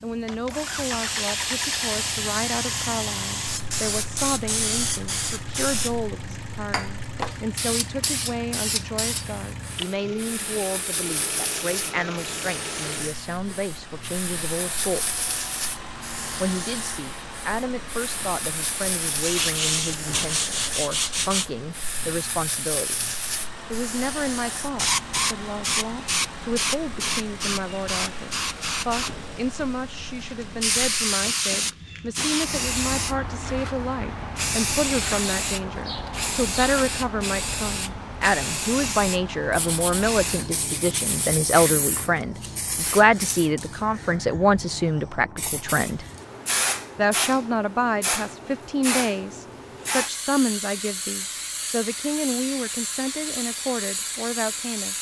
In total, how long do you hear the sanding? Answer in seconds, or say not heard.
4 s.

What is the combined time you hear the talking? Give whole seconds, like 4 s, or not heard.
52 s.